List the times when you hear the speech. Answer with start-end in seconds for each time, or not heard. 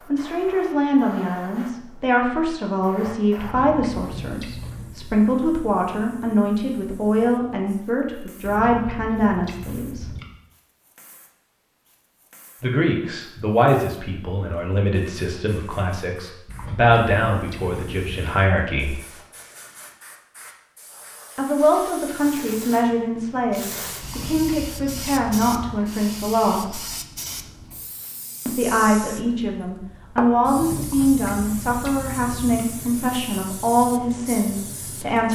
0.1-10.1, 12.6-18.9, 21.4-26.8, 28.4-35.3.